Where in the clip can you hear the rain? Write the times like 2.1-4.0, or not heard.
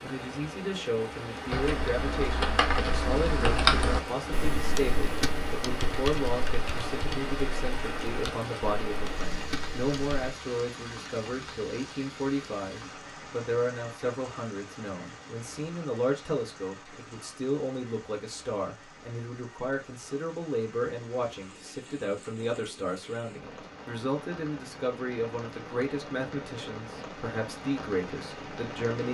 0.0-29.0.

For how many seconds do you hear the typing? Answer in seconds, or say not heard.
9 s.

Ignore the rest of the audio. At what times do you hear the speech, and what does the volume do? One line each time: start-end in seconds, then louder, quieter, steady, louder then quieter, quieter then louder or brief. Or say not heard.
0.0-29.0 steady.